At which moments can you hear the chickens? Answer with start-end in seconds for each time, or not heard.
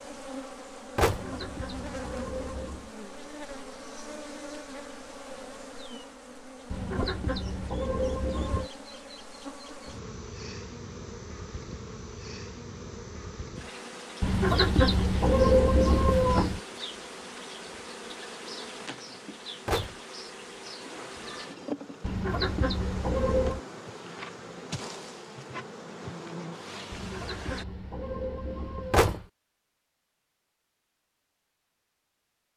1.1-3.0, 6.7-8.7, 14.2-16.6, 22.0-23.6, 26.9-29.3.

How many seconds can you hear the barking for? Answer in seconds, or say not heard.
not heard.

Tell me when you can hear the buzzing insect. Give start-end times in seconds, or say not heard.
0.0-27.6.